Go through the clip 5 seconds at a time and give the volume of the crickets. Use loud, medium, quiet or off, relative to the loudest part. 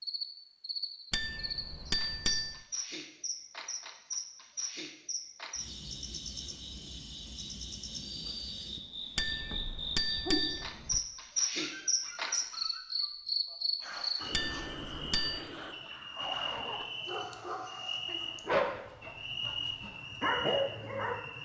medium, medium, loud, medium, medium.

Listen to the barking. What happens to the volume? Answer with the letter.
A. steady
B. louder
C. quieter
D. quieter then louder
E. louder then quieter
B.